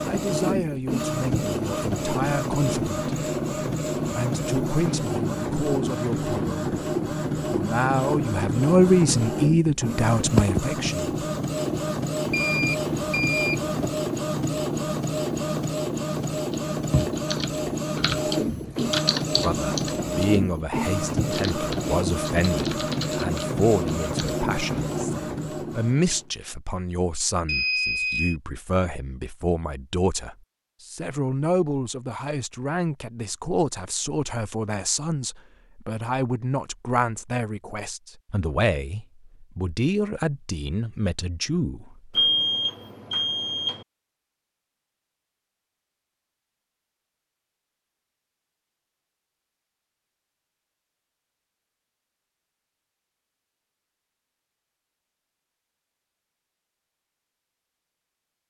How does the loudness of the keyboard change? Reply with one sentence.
The volume of the keyboard goes up, then down.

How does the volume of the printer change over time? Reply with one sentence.
The loudness of the printer stays about the same.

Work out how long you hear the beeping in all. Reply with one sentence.
You can hear the beeping for 4 seconds altogether.